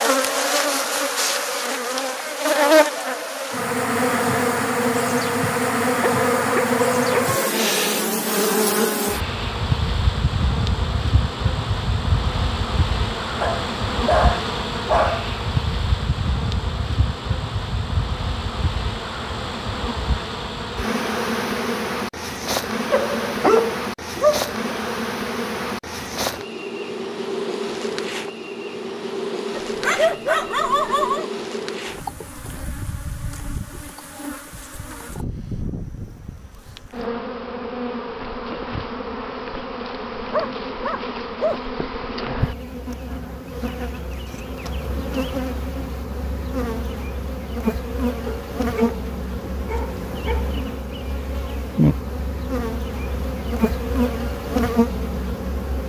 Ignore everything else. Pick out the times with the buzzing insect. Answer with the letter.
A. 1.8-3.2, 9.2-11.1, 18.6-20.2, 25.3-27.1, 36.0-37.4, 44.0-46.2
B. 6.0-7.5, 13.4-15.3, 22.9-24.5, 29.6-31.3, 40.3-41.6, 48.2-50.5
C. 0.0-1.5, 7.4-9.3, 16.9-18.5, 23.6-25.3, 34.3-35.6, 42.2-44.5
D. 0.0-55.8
D.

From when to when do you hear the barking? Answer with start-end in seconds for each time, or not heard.
6.0-7.5, 13.4-15.3, 22.9-24.5, 29.6-31.3, 40.3-41.6, 48.2-50.5.